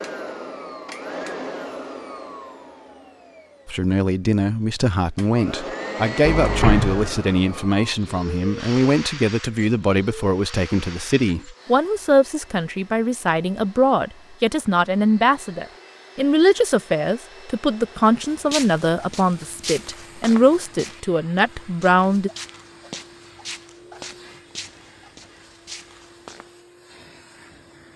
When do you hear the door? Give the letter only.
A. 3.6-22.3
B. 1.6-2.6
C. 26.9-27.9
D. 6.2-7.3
D.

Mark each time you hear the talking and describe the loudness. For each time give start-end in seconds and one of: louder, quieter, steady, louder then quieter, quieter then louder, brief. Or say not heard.
3.6-22.3 steady.